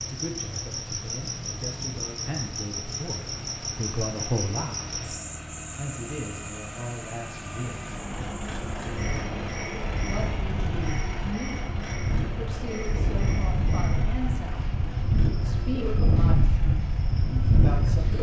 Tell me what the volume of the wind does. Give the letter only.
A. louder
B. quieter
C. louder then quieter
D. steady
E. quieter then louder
A.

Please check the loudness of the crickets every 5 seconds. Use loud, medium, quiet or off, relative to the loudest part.
loud, medium, medium, quiet.